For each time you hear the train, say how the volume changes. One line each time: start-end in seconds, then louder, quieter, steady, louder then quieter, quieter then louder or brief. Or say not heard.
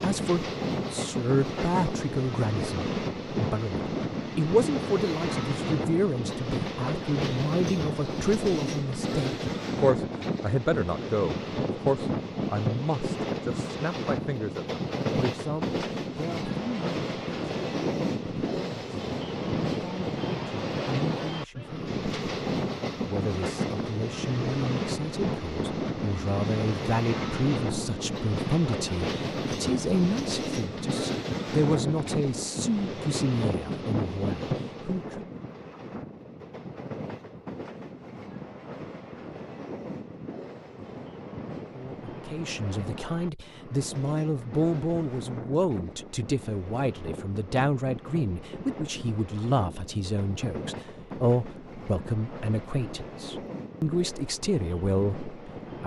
0.0-55.8 quieter.